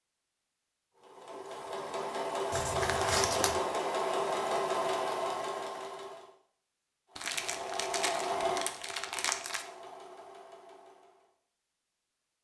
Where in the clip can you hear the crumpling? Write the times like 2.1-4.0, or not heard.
2.5-3.6, 7.2-9.7.